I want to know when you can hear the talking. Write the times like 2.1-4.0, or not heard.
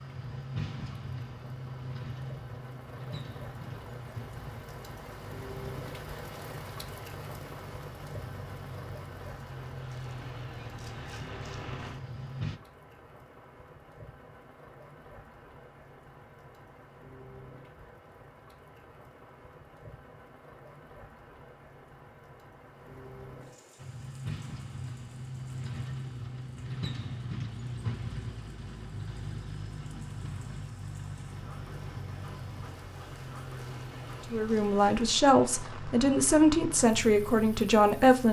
34.3-38.2.